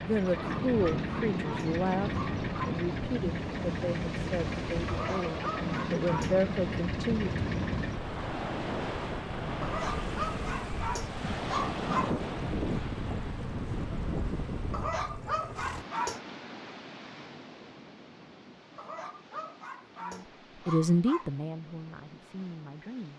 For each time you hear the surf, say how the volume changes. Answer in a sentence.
You can hear the surf from 0.0 to 23.1 s, getting quieter.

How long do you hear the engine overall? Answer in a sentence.
The engine can be heard for 16 seconds in total.